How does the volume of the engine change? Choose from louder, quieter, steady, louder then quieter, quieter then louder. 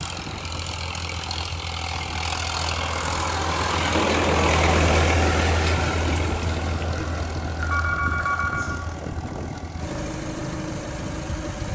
louder then quieter.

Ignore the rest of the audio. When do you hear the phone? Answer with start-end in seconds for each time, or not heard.
7.6-8.8.